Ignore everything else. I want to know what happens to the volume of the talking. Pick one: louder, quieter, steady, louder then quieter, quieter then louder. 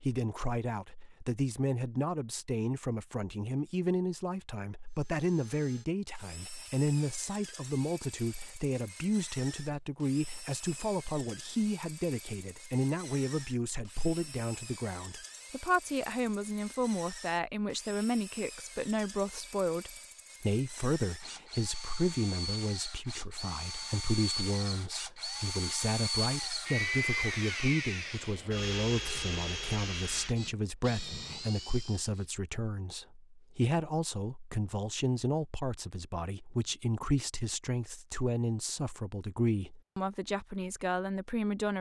steady.